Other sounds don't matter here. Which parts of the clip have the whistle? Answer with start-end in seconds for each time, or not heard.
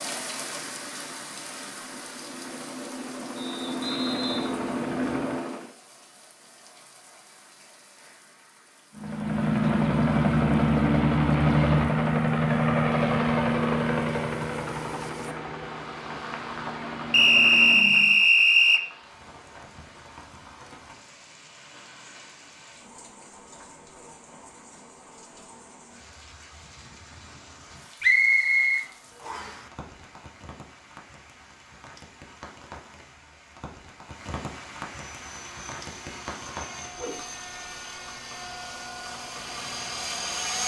3.4-5.3, 17.1-18.9, 28.0-29.6.